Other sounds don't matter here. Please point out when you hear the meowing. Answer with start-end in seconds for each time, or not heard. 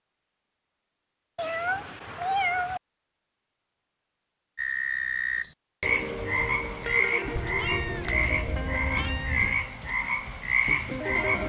1.4-2.8, 7.3-9.7.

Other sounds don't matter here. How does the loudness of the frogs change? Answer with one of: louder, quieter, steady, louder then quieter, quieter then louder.
steady.